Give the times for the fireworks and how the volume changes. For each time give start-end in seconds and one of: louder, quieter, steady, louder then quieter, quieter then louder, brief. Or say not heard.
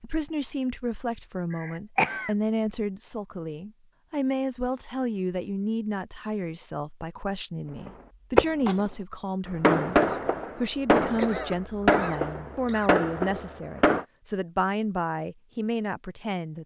7.8-8.8 brief
9.5-14.1 quieter then louder.